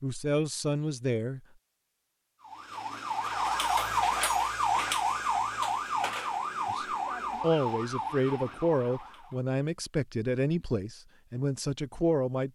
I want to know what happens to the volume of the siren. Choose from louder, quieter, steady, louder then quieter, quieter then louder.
quieter.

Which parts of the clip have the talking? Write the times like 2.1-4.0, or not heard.
0.0-1.4, 6.7-12.5.